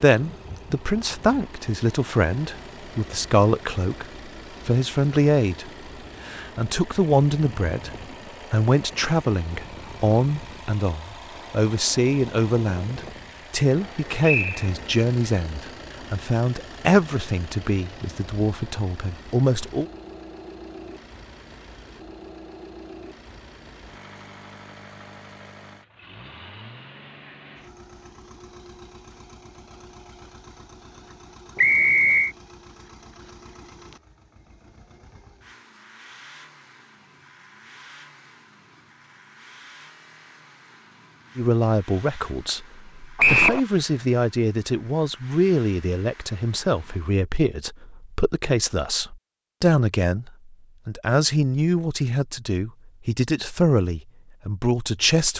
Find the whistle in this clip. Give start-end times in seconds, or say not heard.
14.2-14.7, 31.6-32.3, 43.1-43.6.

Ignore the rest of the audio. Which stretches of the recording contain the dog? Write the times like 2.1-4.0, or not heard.
not heard.